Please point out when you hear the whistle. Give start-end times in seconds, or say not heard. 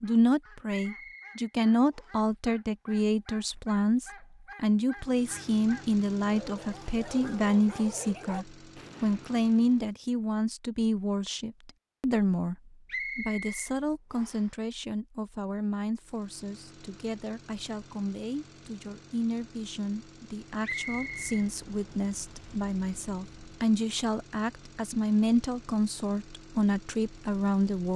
0.7-2.2, 12.8-14.5, 20.6-21.4.